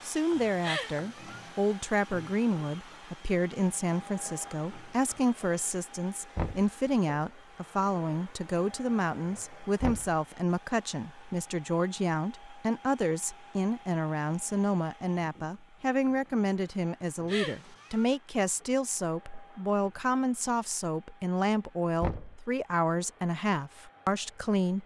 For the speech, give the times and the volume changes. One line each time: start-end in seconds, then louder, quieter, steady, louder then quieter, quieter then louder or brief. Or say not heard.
0.0-24.8 steady.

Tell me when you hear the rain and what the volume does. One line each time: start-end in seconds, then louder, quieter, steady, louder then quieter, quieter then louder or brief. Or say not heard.
not heard.